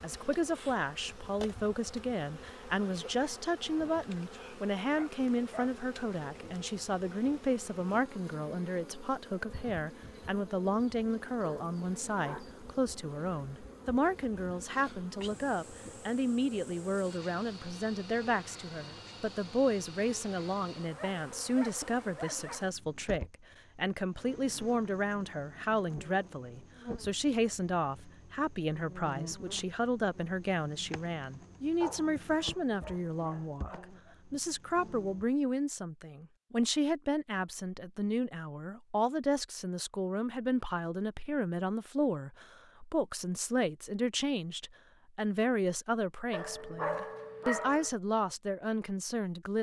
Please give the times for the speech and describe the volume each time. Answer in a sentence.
You can hear the speech from 0.0 to 49.5 s, at a steady volume.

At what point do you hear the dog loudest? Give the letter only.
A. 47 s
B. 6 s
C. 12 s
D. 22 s
A.